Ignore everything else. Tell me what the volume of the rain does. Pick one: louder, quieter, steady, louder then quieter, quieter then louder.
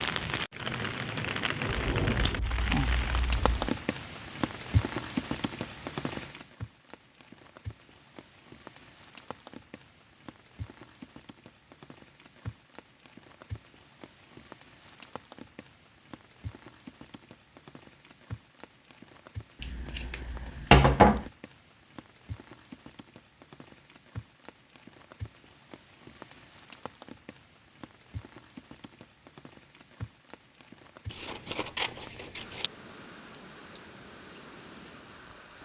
quieter.